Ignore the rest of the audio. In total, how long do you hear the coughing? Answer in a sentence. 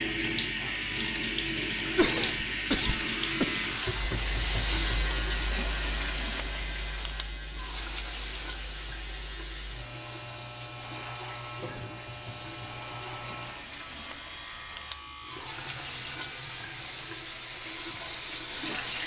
The coughing can be heard for 2 seconds in total.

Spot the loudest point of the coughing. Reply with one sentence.
The volume of the coughing peaks at 2 seconds.